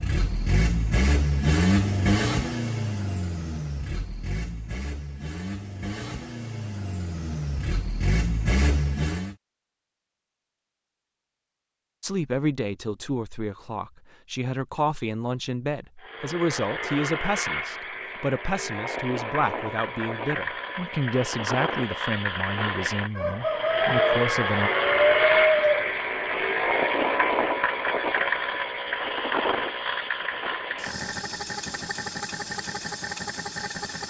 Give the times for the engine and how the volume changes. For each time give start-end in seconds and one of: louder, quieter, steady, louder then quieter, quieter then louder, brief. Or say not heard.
0.0-9.3 quieter then louder
16.0-34.0 louder then quieter.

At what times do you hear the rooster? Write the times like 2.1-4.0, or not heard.
23.1-25.9.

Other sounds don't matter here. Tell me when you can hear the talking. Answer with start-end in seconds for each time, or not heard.
12.0-24.7.